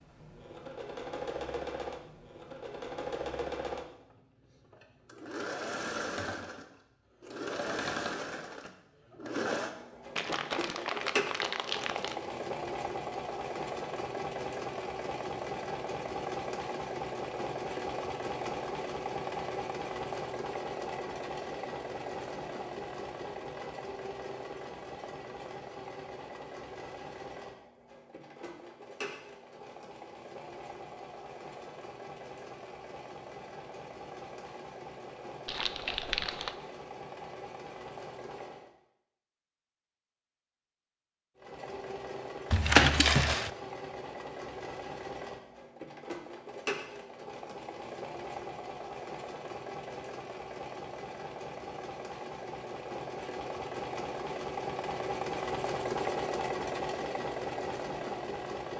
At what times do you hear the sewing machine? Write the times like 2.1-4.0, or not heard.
0.0-38.7, 41.4-58.7.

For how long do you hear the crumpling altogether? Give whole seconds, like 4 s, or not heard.
4 s.